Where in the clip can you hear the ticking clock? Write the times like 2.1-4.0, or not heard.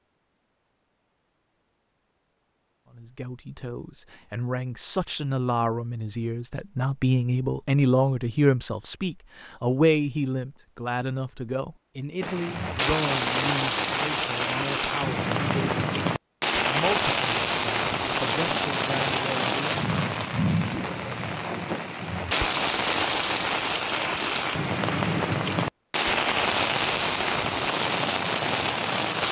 not heard.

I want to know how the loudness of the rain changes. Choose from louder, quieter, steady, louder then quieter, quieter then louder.
steady.